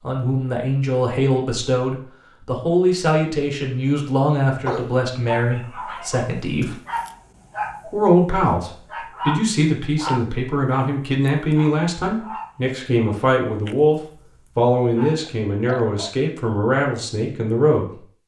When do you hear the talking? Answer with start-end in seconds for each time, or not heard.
0.0-6.8, 7.8-18.0.